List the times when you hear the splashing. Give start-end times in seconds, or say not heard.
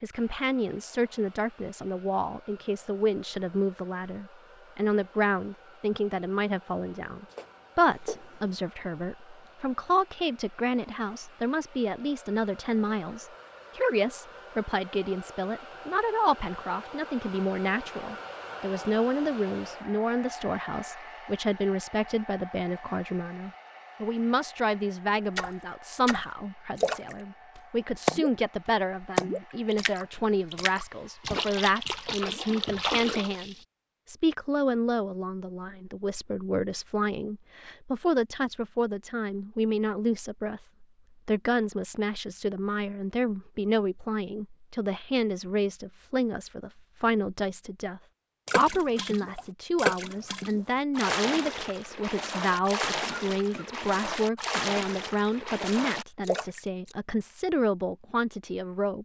25.4-28.3, 29.0-33.6, 48.5-57.0.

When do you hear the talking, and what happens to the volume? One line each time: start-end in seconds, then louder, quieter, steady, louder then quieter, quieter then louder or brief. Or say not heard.
0.0-59.0 steady.